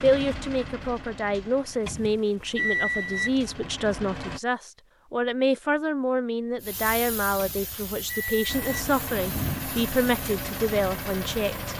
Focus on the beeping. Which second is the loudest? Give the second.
3 s.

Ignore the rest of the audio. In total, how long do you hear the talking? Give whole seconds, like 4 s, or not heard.
12 s.